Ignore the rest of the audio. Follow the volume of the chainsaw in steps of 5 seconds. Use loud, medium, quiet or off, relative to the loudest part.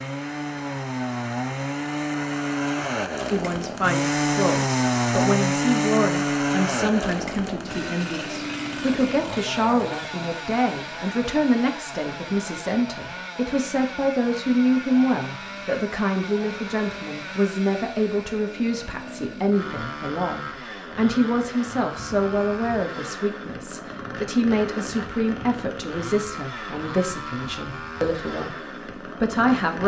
loud, loud, medium, medium, medium, medium.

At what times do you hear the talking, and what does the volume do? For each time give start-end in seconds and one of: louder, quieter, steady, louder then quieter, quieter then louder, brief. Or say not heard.
3.3-29.8 steady.